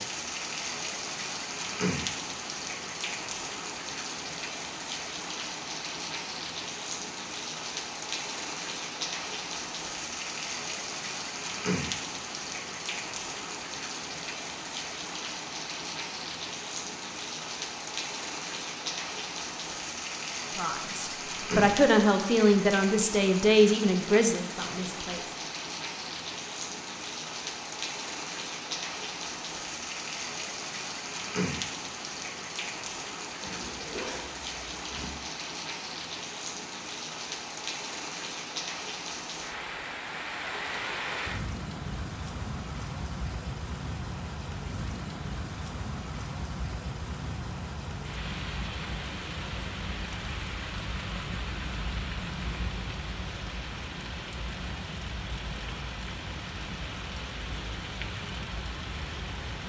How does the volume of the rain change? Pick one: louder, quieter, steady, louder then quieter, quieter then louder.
steady.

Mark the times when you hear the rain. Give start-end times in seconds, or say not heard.
0.0-59.6.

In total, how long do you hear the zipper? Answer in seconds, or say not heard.
2 s.